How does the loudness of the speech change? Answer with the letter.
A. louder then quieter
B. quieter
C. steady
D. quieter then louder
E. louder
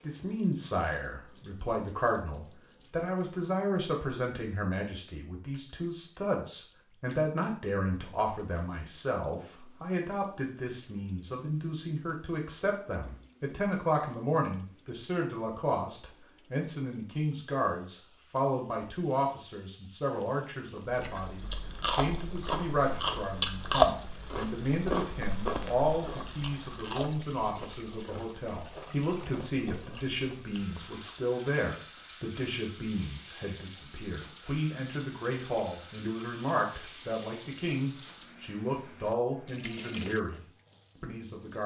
C.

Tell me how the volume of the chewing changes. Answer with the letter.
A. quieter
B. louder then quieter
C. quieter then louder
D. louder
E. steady
B.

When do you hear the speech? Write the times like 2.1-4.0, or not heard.
0.0-41.6.